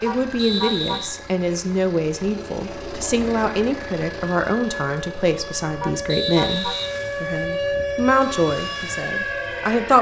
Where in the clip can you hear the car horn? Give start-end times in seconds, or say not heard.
0.1-1.1, 5.8-6.8.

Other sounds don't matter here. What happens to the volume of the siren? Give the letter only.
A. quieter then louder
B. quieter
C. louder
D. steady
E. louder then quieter
C.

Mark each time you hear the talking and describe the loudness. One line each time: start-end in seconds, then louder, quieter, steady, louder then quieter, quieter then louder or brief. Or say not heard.
0.0-9.9 steady.